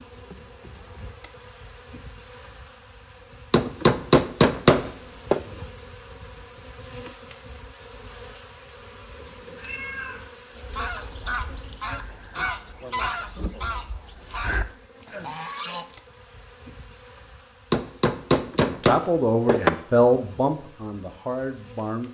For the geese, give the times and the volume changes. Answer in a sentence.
You can hear the geese from 10.5 to 15.8 s, at a steady volume.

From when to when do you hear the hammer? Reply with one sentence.
You can hear the hammer from 3.5 to 5.4 s and from 17.7 to 19.7 s.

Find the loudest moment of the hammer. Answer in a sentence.
The volume of the hammer peaks at 5 seconds.